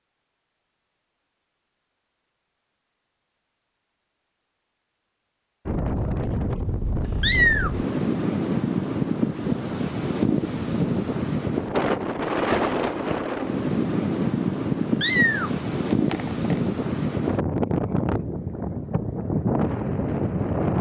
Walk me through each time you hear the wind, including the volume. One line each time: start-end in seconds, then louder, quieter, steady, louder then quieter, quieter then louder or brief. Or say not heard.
5.7-20.7 steady.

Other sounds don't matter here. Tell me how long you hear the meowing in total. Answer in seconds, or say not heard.
2 s.